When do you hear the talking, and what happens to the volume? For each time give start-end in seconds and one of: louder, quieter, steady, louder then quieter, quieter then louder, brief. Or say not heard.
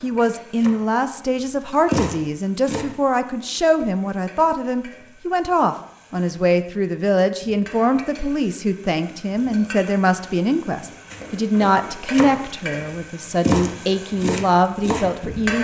0.0-15.6 steady.